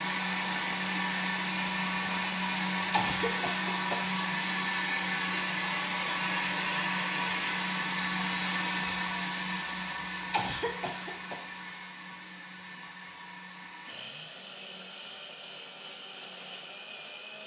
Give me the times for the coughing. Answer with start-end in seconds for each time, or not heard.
2.9-4.0, 10.3-11.3.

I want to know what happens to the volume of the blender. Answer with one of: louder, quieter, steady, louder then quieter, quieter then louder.
quieter.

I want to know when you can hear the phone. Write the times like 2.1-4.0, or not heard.
not heard.